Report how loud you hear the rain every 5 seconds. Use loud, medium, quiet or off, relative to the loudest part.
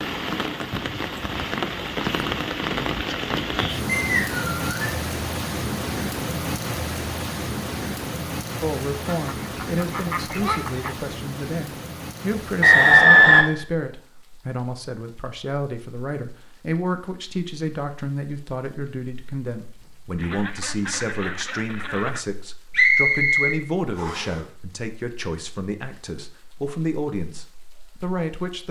loud, loud, medium, quiet, quiet, quiet.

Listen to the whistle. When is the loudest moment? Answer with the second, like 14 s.
13 s.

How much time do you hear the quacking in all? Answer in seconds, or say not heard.
4 s.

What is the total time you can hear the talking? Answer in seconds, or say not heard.
20 s.